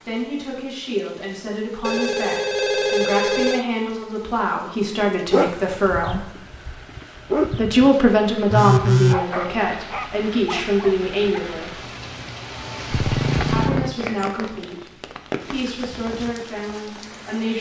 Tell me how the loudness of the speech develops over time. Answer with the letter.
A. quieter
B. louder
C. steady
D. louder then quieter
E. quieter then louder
D.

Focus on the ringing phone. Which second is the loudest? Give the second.
9 s.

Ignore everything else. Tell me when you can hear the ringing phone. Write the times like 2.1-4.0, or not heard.
1.8-3.6, 8.5-9.2, 12.9-13.9.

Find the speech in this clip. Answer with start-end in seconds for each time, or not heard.
0.1-6.2, 7.5-11.8, 13.5-17.5.